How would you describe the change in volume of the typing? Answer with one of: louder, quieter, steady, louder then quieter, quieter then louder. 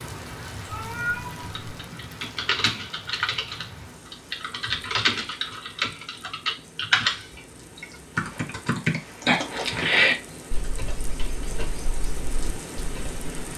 louder then quieter.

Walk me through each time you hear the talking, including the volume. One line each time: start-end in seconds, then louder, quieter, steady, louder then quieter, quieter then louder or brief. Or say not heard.
not heard.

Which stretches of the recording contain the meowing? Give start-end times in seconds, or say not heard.
0.7-1.6.